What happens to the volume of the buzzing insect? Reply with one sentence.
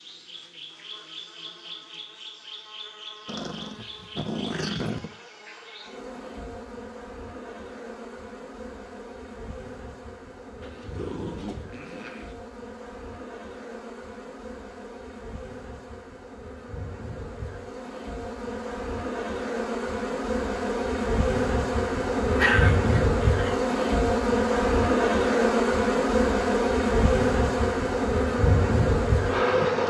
The volume of the buzzing insect goes up.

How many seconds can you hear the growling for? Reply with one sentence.
You can hear the growling for 5 seconds altogether.